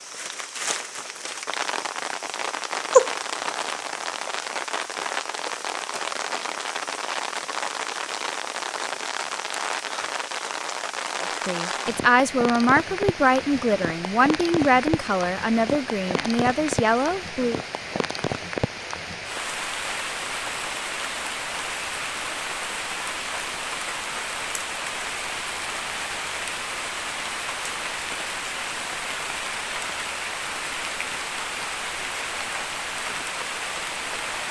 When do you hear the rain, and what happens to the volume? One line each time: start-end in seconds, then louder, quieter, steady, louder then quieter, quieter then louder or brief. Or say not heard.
0.0-34.4 steady.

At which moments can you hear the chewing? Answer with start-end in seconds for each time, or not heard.
2.9-3.5.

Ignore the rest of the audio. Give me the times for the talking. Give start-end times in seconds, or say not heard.
11.2-17.6.